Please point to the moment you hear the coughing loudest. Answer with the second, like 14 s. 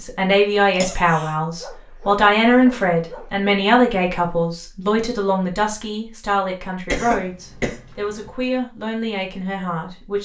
7 s.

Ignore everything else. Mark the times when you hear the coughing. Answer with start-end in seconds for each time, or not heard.
0.8-1.4, 6.8-8.3.